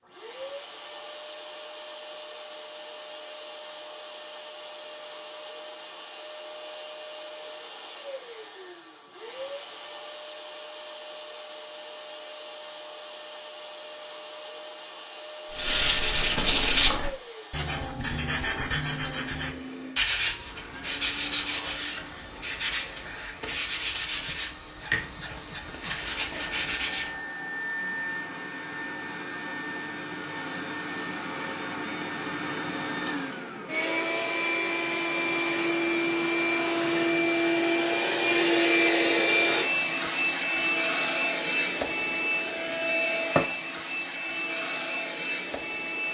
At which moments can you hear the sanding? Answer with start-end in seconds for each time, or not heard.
15.5-27.2.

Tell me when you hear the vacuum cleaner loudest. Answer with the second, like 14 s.
39 s.